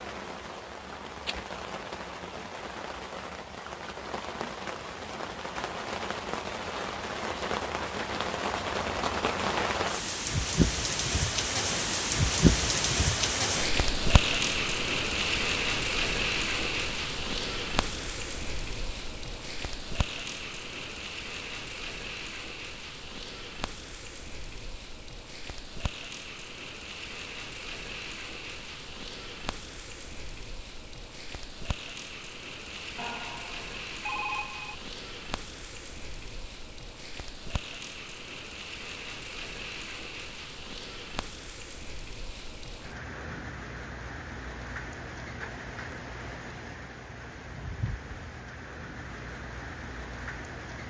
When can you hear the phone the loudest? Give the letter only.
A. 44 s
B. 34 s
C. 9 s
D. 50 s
B.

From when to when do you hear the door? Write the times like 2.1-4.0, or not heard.
not heard.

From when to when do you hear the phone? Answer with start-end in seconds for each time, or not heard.
33.0-34.8.